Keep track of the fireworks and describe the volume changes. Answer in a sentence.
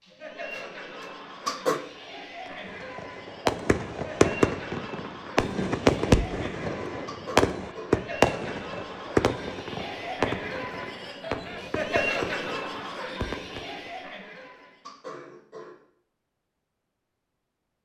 The volume of the fireworks goes down.